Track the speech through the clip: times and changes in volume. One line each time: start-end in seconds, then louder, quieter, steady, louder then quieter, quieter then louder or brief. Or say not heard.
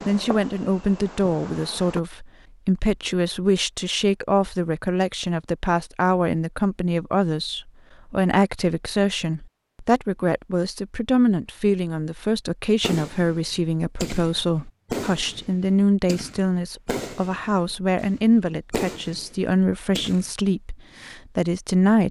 0.1-22.0 steady.